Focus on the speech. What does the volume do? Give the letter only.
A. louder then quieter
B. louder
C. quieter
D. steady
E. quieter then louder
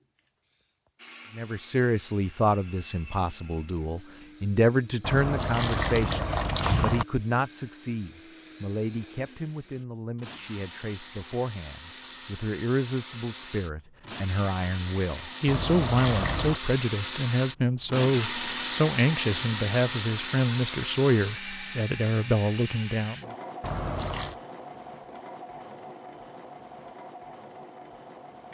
E.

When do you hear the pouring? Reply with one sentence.
You can hear the pouring from 5.0 to 7.0 s, from 15.4 to 16.6 s and from 23.6 to 24.4 s.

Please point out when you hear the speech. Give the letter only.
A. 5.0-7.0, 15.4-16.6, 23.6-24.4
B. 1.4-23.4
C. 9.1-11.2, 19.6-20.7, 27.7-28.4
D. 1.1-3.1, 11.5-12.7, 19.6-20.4
B.